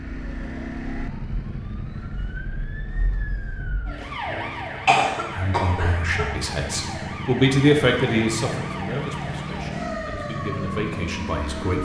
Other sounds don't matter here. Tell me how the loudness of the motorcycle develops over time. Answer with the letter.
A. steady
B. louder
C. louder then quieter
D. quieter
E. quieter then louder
E.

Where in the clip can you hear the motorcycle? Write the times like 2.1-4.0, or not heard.
0.0-11.8.